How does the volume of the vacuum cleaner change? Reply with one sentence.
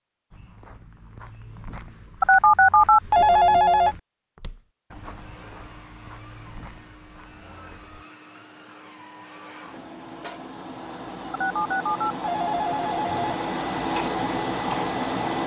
The loudness of the vacuum cleaner goes up.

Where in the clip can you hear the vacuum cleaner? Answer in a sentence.
The vacuum cleaner can be heard from 4.9 to 15.4 s.